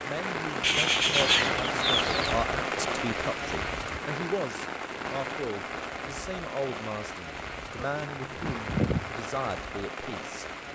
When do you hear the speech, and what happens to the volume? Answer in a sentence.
The speech can be heard from 0.0 to 10.5 s, at a steady volume.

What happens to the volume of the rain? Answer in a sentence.
The volume of the rain goes down.